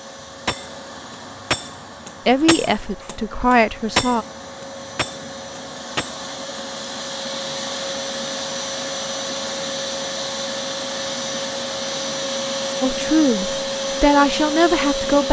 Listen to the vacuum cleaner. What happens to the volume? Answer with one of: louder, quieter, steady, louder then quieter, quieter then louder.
louder.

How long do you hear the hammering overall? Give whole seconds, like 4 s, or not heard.
6 s.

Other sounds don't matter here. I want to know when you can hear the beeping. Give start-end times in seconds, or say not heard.
not heard.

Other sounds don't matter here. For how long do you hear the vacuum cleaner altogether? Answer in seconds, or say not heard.
15 s.